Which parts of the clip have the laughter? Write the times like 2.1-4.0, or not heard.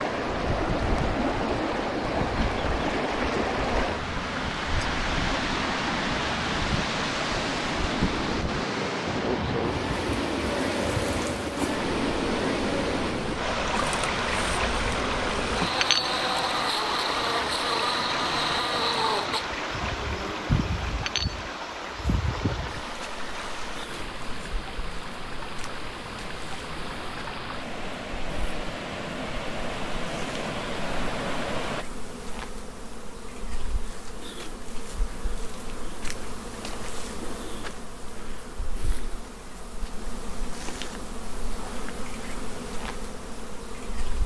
not heard.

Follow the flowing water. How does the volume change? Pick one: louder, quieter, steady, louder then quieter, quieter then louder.
quieter.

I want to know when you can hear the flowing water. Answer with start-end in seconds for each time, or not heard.
0.0-31.9.